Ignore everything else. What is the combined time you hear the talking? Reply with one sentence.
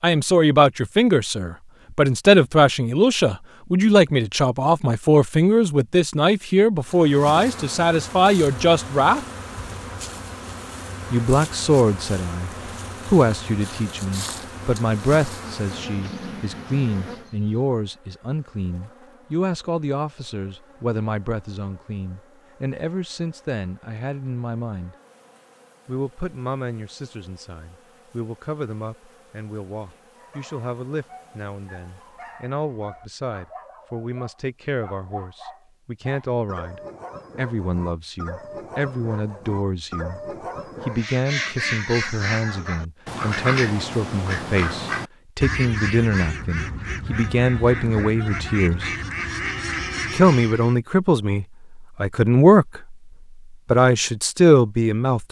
You can hear the talking for 50 seconds altogether.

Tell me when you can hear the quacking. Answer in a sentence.
The quacking can be heard from 40.9 to 50.8 s.